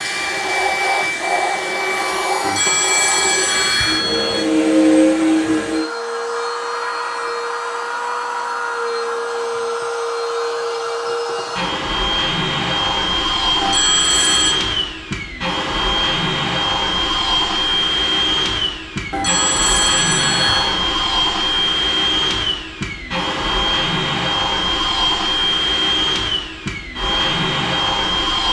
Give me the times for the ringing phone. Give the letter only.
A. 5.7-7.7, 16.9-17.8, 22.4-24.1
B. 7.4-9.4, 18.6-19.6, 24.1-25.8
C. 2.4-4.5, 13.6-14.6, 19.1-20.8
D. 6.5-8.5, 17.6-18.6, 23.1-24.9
C.